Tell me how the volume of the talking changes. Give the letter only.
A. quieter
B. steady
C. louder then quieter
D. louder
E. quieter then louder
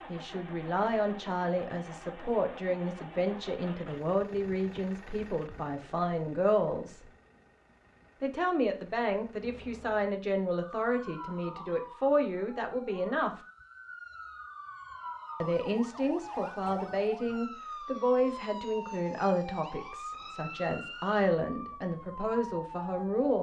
B.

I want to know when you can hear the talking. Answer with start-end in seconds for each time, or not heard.
0.1-7.0, 8.2-13.4, 15.4-23.3.